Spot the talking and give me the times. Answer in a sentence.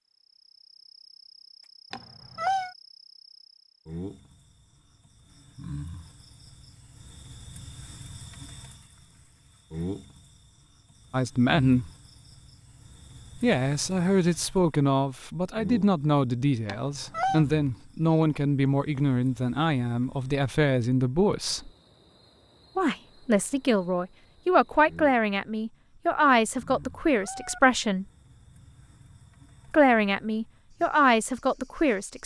You can hear the talking from 11.1 to 11.9 s, from 13.4 to 21.7 s, from 22.8 to 28.1 s and from 29.7 to 32.2 s.